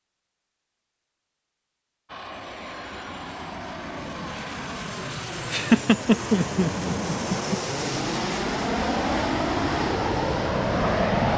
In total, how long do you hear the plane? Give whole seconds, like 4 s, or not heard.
9 s.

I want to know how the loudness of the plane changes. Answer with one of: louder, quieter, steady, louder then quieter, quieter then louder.
louder.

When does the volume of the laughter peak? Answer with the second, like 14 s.
6 s.